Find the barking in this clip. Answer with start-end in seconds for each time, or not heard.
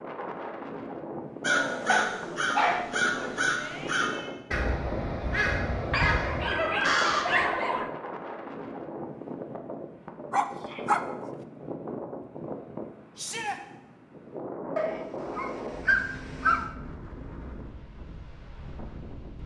1.9-3.0, 5.9-7.9, 10.3-11.4, 14.8-16.7.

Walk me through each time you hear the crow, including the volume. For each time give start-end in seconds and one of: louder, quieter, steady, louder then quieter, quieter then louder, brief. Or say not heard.
1.4-7.2 steady.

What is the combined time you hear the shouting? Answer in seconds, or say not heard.
2 s.